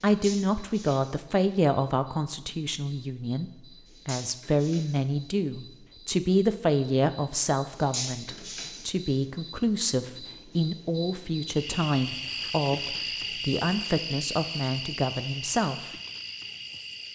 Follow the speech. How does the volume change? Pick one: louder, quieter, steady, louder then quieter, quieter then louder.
steady.